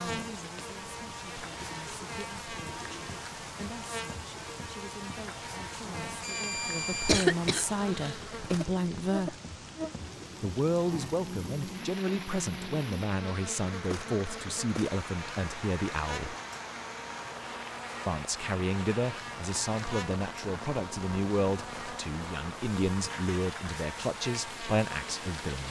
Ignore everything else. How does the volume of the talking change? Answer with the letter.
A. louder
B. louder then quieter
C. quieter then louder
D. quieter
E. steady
A.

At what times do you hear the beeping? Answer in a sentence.
The beeping can be heard from 6.2 to 7.2 s.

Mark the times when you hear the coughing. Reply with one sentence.
You can hear the coughing from 7.0 to 8.2 s.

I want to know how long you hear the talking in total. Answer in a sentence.
The talking can be heard for 23 seconds in total.